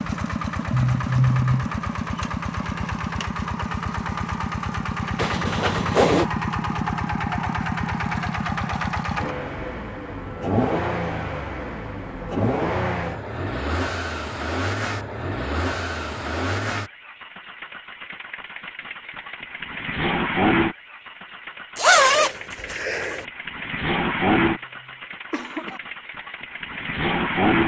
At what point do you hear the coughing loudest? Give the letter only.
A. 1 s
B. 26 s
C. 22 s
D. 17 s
A.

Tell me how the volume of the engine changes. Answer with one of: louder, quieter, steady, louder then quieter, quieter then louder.
steady.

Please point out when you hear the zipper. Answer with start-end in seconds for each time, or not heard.
5.2-6.3, 21.8-23.2.